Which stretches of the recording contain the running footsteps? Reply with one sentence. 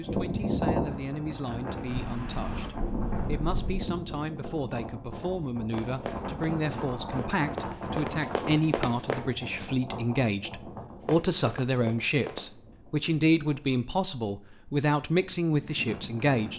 The running footsteps can be heard from 5.7 to 9.3 s and from 11.1 to 12.5 s.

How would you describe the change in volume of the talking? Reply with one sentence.
The loudness of the talking goes up.